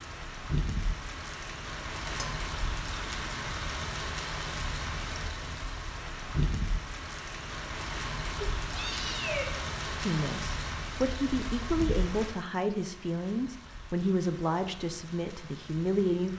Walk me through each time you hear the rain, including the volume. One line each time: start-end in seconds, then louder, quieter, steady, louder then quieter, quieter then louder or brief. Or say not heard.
0.0-16.3 quieter.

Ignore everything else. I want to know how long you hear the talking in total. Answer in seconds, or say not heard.
6 s.